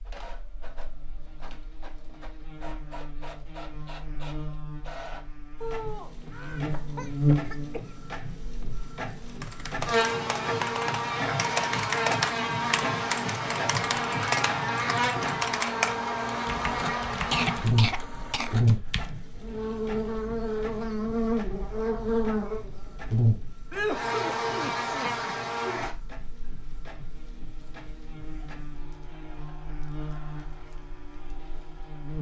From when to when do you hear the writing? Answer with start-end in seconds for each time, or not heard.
not heard.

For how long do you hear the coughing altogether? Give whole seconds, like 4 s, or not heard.
5 s.